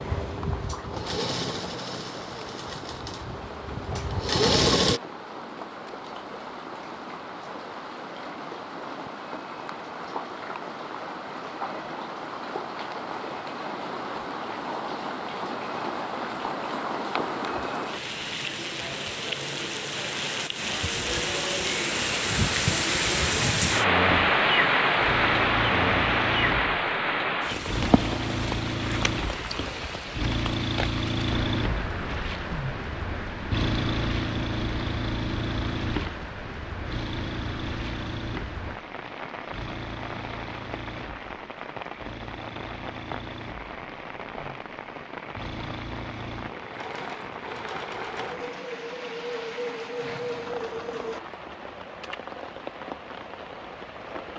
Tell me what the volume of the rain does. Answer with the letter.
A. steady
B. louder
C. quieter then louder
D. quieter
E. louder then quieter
E.